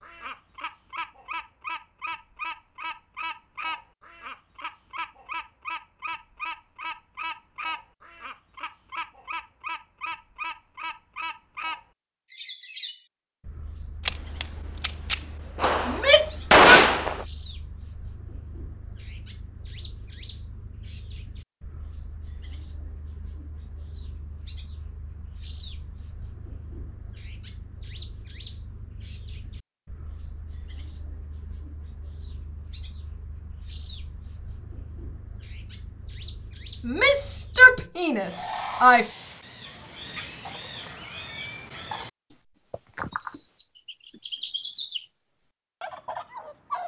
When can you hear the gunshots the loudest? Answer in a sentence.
The volume of the gunshots peaks at 17 seconds.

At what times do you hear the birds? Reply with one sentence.
You can hear the birds from 0.0 to 46.8 s.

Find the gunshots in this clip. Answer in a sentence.
You can hear the gunshots from 14.1 to 17.2 s.